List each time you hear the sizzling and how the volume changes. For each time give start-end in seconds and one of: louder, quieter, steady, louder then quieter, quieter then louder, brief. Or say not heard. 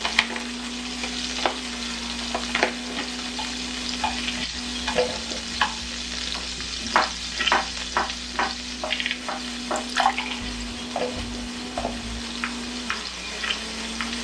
0.0-14.1 quieter.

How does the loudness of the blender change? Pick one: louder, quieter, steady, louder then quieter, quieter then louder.
quieter then louder.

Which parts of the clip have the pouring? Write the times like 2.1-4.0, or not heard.
9.8-10.6.